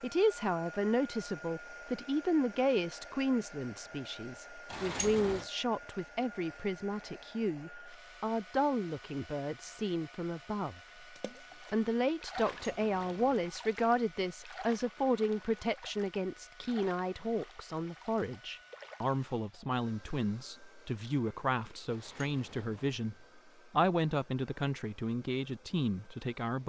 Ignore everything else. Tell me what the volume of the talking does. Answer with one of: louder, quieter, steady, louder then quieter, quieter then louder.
steady.